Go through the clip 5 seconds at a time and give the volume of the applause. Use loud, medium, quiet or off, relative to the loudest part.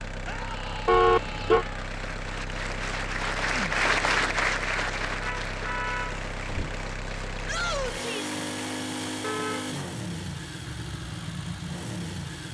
loud, medium, off.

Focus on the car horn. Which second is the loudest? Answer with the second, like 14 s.
1 s.